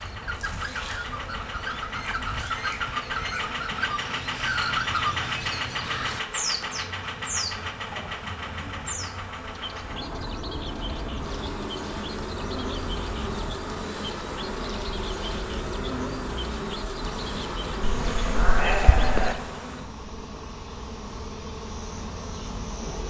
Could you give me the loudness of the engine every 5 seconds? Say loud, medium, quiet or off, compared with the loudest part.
loud, loud, medium, medium, medium.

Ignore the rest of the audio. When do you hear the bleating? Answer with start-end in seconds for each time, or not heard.
17.9-19.4.